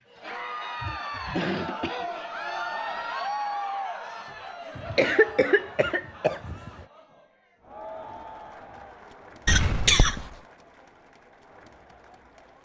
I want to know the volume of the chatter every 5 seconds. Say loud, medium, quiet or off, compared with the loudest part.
loud, medium, quiet.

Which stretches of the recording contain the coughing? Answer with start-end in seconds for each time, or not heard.
0.8-2.4, 4.8-6.8, 9.4-10.2.